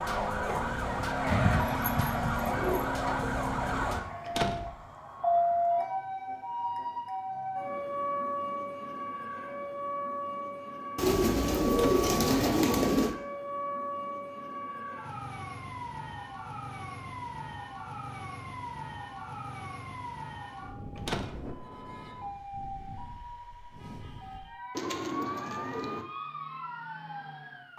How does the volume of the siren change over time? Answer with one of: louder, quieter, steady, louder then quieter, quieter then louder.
quieter.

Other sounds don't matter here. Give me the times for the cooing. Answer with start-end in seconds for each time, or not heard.
1.2-2.9, 10.9-13.2, 24.7-26.1.